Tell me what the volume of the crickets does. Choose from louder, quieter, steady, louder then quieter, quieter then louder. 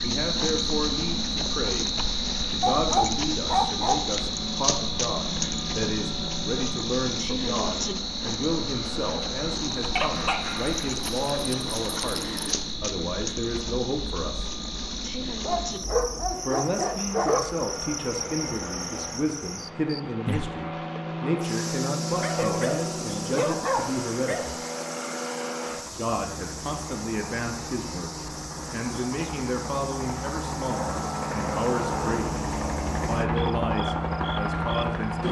quieter.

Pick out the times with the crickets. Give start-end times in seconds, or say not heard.
0.0-35.0.